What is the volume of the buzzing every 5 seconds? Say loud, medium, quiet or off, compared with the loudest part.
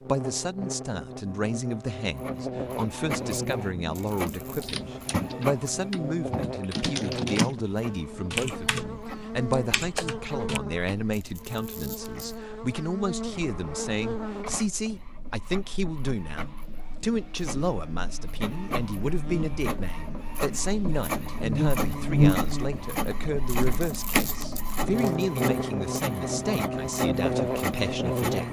medium, medium, medium, quiet, loud, loud.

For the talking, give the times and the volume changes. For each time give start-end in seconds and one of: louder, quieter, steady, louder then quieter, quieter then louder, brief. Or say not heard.
0.0-28.4 steady.